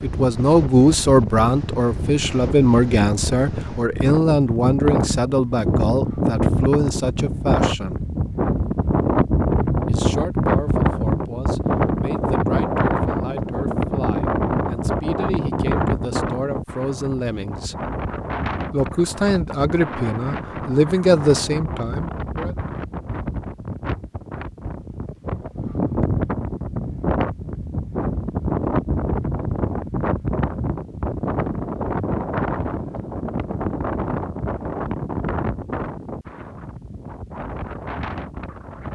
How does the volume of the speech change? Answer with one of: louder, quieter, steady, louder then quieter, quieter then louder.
quieter then louder.